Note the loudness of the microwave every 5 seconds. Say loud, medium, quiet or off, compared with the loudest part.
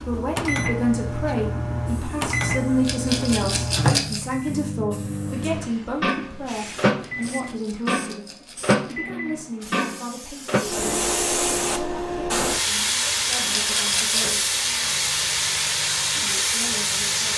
loud, loud, medium, quiet.